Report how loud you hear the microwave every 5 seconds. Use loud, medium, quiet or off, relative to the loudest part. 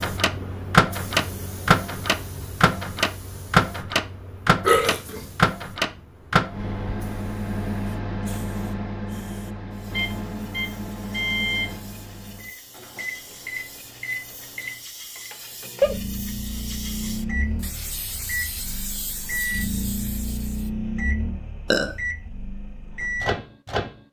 loud, medium, medium, medium, medium.